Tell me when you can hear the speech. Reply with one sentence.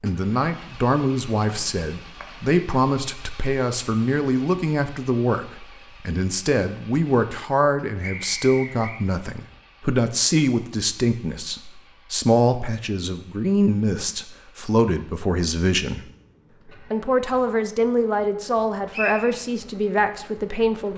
The speech can be heard from 0.0 to 16.1 s and from 16.9 to 20.9 s.